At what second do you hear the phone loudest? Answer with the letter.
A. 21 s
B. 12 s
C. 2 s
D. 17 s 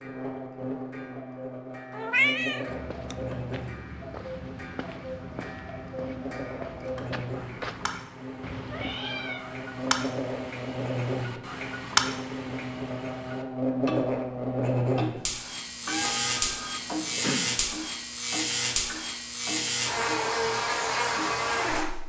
D.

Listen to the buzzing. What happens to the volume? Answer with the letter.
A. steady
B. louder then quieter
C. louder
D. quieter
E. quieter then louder
C.